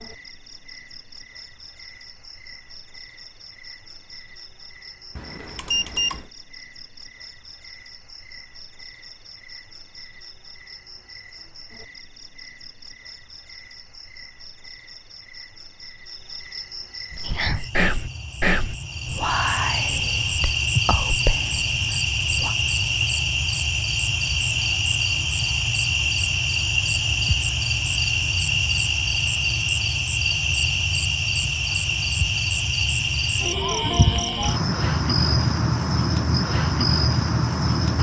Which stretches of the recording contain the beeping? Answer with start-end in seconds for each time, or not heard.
5.2-6.2.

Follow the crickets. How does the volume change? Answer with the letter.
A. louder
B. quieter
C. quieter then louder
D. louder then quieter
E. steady
A.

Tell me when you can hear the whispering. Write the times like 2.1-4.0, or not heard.
17.1-22.6.